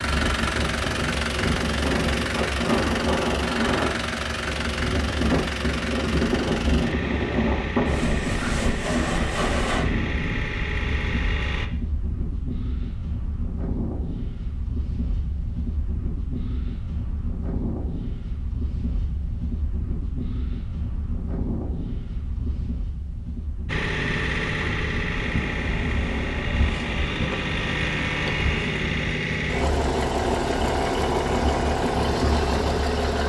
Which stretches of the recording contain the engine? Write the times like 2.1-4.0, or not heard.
0.0-11.7, 23.6-33.2.